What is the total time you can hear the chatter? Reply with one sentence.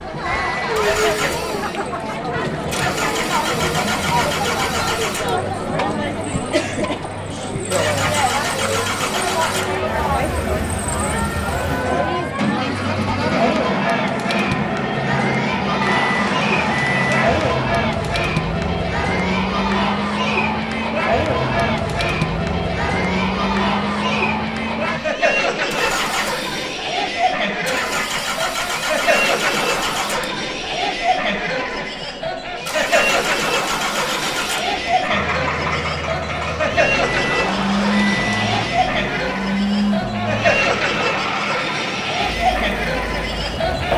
The chatter can be heard for 44 seconds in total.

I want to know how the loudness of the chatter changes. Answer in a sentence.
The loudness of the chatter stays about the same.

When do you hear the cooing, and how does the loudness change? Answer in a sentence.
You can't hear the cooing here.